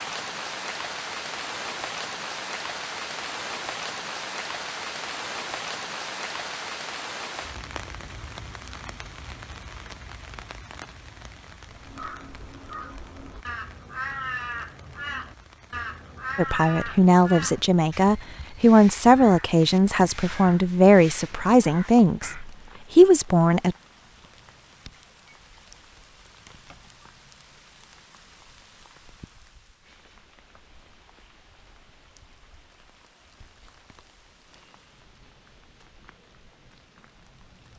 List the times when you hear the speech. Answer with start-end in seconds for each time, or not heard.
16.4-23.8.